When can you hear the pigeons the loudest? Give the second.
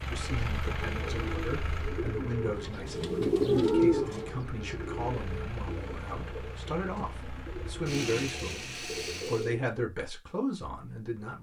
4 s.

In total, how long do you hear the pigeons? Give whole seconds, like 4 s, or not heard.
9 s.